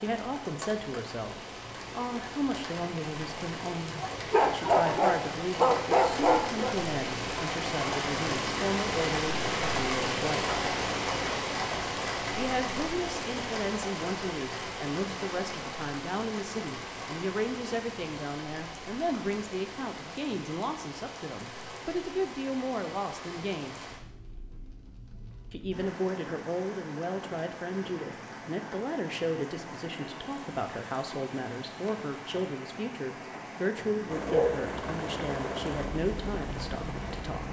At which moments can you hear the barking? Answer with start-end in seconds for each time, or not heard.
4.1-6.8, 33.2-34.5.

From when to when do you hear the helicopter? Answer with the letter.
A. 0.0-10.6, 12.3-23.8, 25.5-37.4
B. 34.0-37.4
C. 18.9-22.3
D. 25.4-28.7
B.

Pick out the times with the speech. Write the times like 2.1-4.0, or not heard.
0.0-10.6, 12.3-23.8, 25.5-37.4.